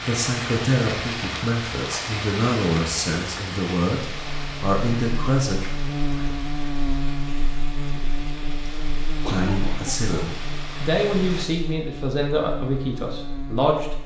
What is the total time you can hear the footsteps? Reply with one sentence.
The footsteps can't be heard in this clip.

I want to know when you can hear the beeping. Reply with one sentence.
You can't hear the beeping here.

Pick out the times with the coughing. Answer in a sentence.
You can hear the coughing from 9.2 to 10.4 s.